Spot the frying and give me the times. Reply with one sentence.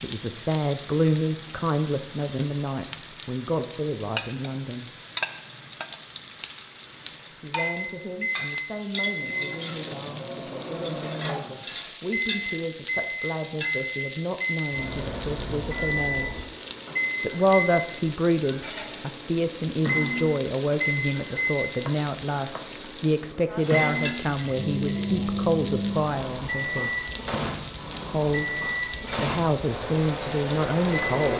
The frying can be heard from 0.0 to 31.3 s.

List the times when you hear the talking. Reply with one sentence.
The talking can be heard from 0.0 to 4.9 s, from 7.3 to 16.4 s, from 17.2 to 27.1 s, from 28.1 to 28.6 s and from 29.2 to 31.3 s.